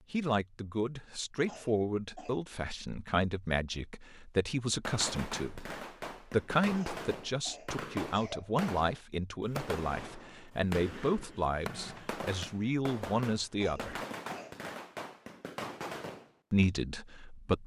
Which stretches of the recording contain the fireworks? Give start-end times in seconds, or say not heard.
4.8-16.6.